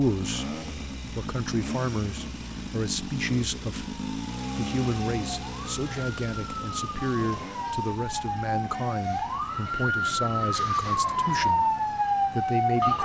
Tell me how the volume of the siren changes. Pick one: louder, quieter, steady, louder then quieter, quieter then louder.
louder.